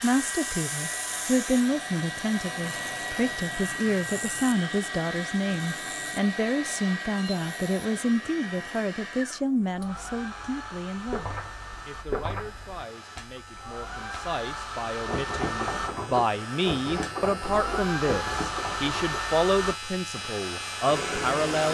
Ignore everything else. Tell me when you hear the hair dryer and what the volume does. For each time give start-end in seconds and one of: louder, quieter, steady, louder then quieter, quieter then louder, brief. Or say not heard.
0.0-21.6 quieter then louder.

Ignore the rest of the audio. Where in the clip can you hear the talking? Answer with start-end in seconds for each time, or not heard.
0.0-21.6.